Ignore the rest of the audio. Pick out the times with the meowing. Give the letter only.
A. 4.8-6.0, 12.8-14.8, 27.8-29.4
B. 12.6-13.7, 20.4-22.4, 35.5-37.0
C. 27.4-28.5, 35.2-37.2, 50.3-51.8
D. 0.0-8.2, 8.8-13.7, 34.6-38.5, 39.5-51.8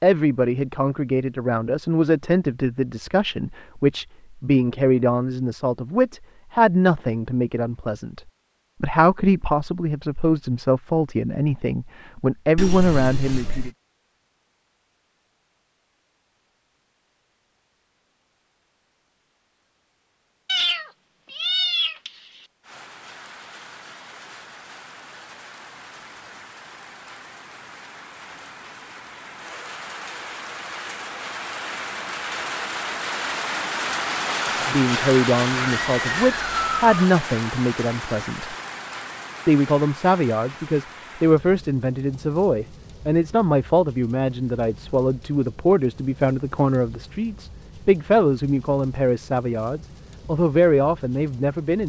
B.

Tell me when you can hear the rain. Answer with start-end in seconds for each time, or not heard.
22.6-51.8.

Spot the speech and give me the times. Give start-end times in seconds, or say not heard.
0.0-8.2, 8.8-13.7, 34.6-38.5, 39.5-51.8.